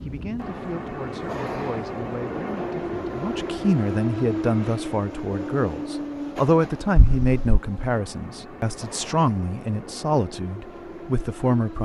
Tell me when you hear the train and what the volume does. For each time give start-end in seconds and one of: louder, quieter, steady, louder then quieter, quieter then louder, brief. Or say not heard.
0.0-11.8 quieter.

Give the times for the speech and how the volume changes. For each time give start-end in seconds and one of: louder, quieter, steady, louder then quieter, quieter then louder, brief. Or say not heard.
0.0-11.8 louder.